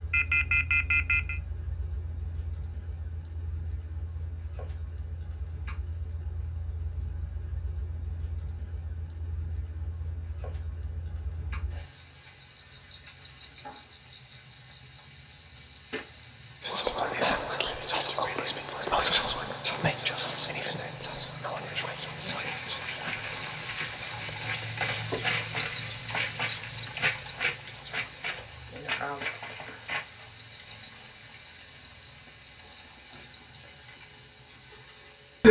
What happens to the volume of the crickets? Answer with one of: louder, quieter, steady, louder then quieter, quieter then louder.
louder then quieter.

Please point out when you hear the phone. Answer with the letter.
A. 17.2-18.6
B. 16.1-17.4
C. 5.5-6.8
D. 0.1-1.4
D.